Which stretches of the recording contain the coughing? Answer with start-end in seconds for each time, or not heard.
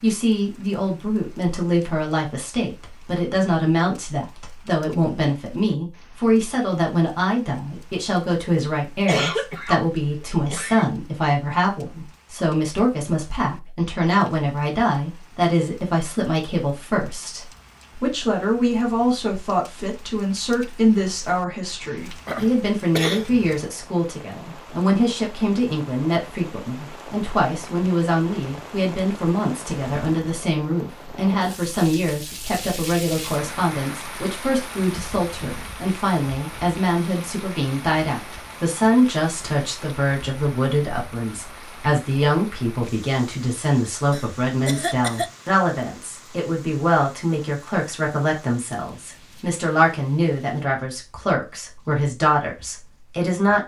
9.1-10.9, 21.8-23.6, 44.1-45.3.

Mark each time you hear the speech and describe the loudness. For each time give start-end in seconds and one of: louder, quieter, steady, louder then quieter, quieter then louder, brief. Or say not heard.
0.0-53.6 steady.